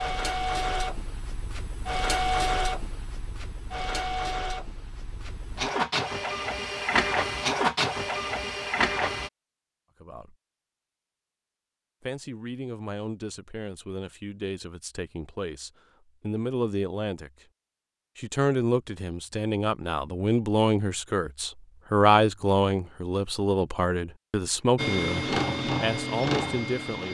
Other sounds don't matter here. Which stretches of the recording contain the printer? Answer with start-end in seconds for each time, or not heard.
0.0-9.3, 24.8-27.0.